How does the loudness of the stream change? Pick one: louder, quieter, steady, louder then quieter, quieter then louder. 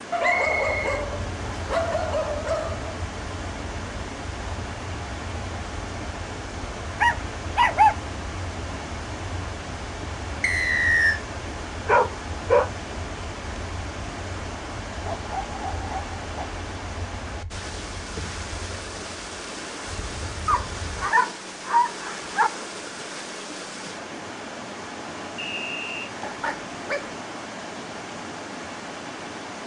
steady.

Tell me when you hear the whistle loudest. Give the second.
11 s.